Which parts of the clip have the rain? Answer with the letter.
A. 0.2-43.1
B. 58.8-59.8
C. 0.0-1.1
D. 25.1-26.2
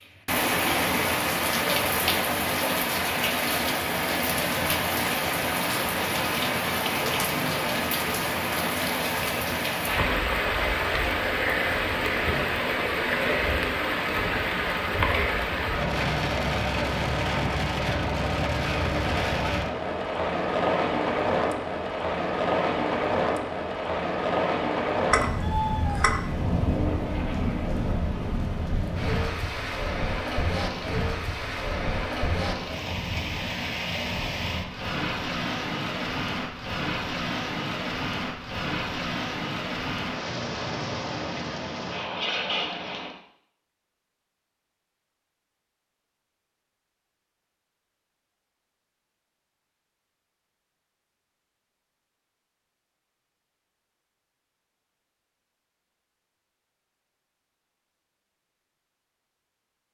A.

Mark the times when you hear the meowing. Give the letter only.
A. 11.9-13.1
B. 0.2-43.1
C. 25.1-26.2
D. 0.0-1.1
C.